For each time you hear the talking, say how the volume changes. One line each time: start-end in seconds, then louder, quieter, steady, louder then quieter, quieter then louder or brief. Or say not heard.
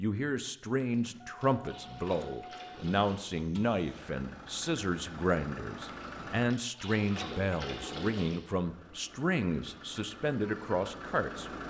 0.0-11.5 steady.